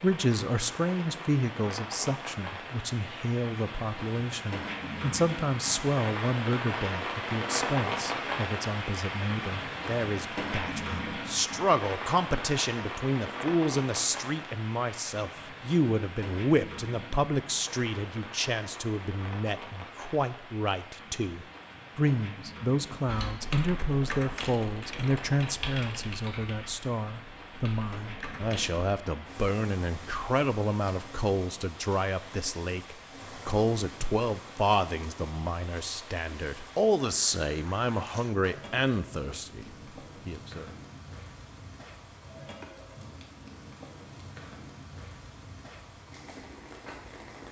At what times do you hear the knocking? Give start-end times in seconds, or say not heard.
not heard.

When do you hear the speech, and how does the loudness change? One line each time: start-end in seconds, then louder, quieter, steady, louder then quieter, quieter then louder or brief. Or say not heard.
0.0-39.6 steady
40.2-40.7 brief.